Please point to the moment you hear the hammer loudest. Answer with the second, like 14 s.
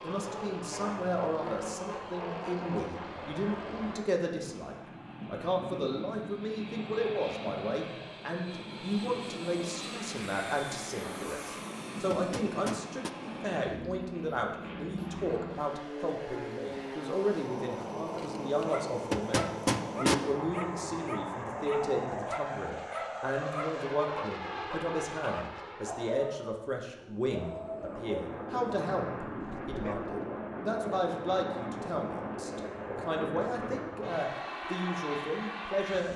20 s.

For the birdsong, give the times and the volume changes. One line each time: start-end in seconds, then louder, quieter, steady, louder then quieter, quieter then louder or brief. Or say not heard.
not heard.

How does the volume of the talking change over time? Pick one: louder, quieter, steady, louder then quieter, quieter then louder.
steady.